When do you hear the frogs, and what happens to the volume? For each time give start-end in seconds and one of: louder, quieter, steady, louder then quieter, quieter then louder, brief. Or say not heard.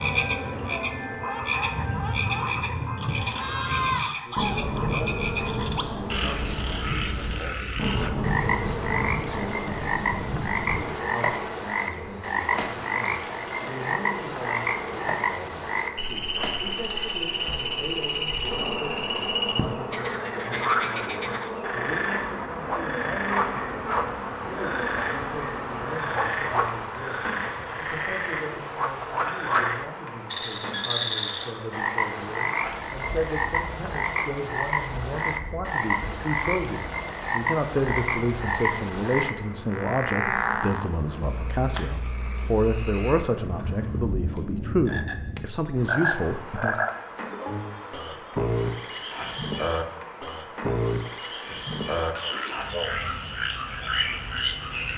0.0-54.9 steady.